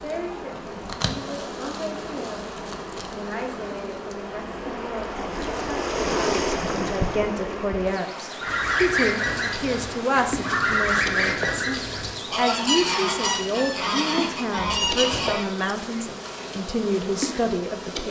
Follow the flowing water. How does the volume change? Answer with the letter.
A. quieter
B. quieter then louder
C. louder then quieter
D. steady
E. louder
C.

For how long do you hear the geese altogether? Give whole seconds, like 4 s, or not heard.
7 s.